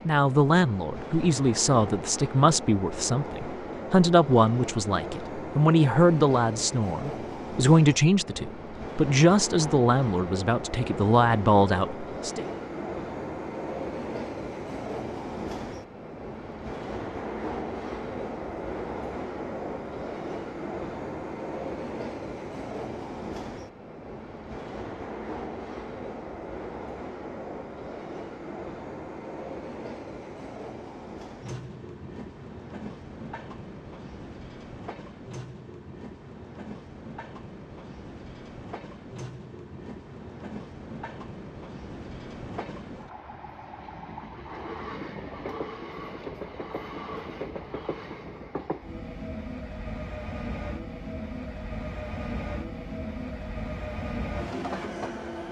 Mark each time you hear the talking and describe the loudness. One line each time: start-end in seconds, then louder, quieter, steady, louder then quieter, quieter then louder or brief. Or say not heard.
0.1-12.4 steady.